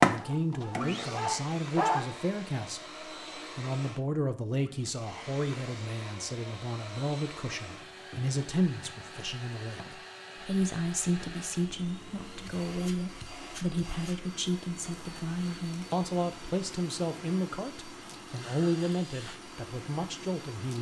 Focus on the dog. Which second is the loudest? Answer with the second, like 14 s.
2 s.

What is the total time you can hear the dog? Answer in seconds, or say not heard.
2 s.